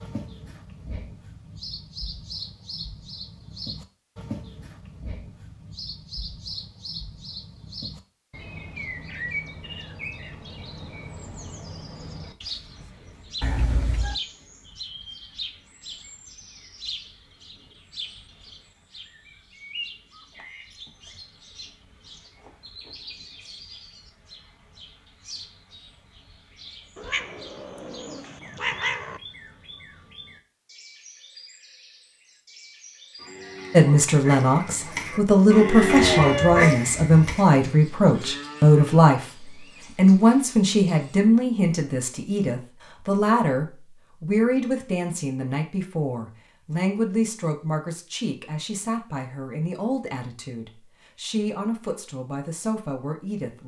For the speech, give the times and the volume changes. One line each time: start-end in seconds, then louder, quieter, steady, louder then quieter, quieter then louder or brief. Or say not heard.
33.7-53.6 quieter.